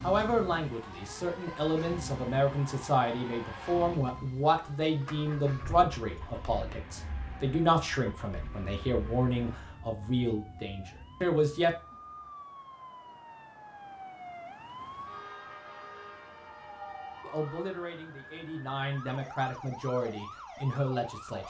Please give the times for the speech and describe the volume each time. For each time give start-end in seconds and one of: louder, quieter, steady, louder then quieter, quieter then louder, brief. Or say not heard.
0.0-11.7 steady
17.2-21.4 louder.